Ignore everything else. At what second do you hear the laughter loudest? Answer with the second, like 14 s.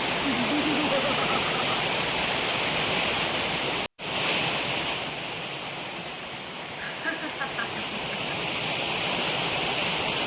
1 s.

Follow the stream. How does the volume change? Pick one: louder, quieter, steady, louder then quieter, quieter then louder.
quieter then louder.